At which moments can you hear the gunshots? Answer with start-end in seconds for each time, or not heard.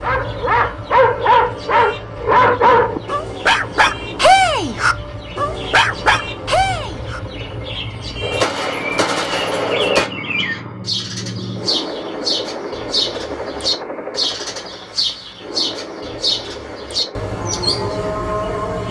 8.2-10.1.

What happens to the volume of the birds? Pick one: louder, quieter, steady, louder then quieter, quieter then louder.
louder.